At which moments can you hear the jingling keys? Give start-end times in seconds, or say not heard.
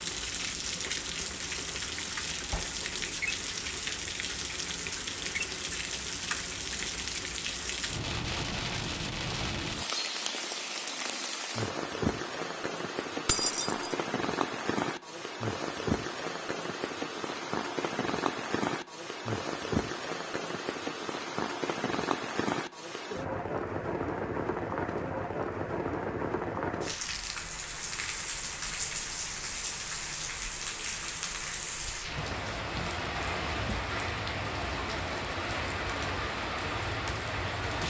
13.2-13.9.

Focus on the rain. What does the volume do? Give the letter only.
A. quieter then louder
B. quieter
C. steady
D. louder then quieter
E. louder
C.